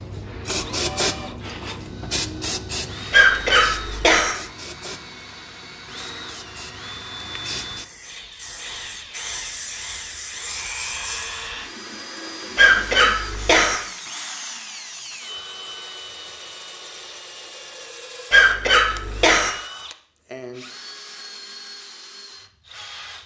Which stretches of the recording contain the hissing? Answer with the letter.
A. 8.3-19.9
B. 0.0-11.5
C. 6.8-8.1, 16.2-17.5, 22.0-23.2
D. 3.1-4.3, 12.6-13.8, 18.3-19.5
B.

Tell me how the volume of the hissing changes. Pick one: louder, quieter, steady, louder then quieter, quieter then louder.
quieter then louder.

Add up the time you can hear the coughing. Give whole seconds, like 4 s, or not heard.
4 s.